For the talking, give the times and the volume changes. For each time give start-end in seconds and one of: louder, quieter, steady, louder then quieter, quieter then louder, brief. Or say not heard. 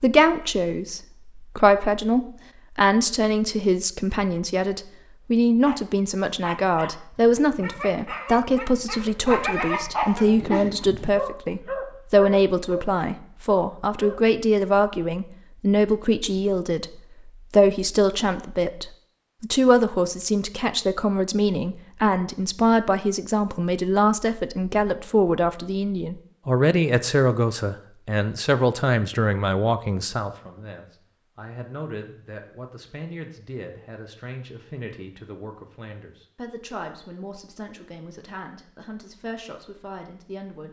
0.0-40.6 quieter.